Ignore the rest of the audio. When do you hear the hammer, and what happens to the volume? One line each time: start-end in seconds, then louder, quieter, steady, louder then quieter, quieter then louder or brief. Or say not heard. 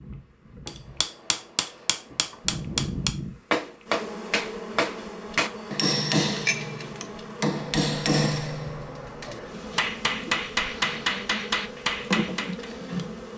0.7-12.7 steady.